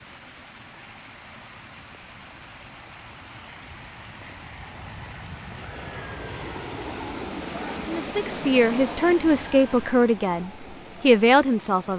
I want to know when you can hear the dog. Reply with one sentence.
The dog can't be heard in this clip.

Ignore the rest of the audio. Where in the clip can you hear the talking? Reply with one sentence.
You can hear the talking from 7.8 to 11.9 s.